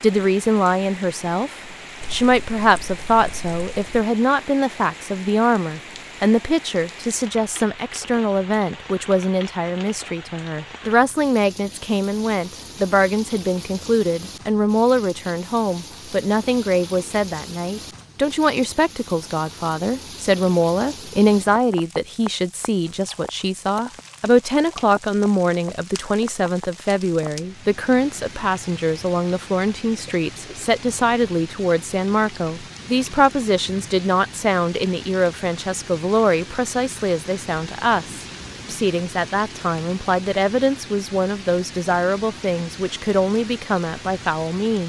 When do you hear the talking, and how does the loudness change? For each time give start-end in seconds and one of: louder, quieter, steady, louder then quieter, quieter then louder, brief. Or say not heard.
0.0-44.8 steady.